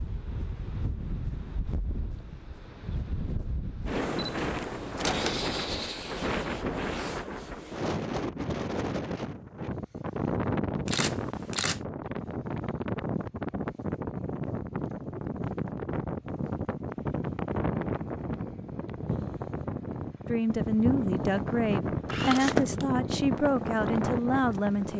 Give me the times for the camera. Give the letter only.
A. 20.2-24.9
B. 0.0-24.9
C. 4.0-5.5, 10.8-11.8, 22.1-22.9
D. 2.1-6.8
C.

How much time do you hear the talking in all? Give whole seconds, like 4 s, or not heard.
5 s.